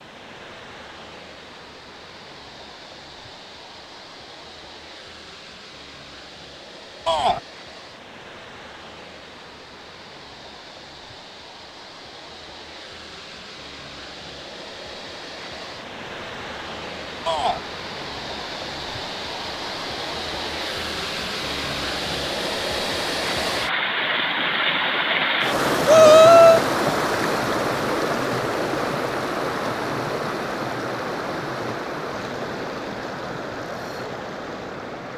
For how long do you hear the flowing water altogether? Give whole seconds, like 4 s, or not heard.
35 s.